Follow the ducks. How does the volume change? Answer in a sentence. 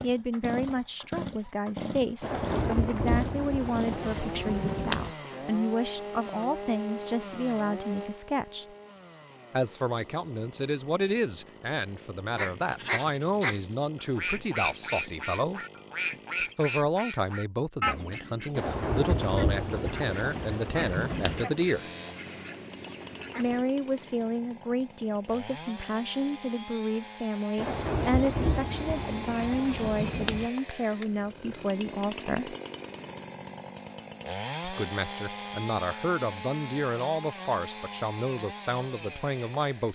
The loudness of the ducks goes down.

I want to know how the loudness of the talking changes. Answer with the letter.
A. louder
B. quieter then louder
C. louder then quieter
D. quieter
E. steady
E.